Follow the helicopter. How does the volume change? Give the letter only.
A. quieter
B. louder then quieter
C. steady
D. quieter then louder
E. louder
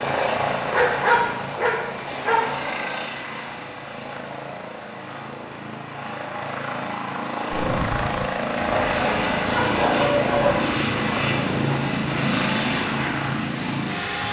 D.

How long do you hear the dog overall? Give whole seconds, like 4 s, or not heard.
4 s.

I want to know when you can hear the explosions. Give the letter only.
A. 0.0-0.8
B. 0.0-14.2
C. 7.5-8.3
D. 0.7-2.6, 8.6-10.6
C.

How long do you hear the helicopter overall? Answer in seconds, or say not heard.
14 s.